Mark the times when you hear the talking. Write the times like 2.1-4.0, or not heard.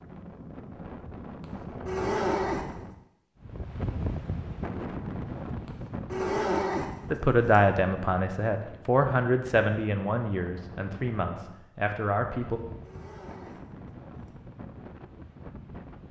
7.1-12.6.